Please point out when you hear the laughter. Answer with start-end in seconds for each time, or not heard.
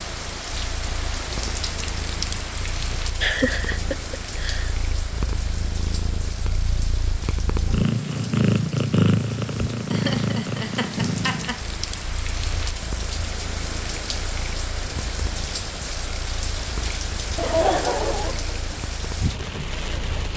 3.2-4.7, 9.9-11.6, 17.4-18.8.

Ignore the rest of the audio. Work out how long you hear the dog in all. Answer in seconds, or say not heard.
not heard.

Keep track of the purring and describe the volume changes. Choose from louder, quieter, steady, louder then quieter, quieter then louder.
louder then quieter.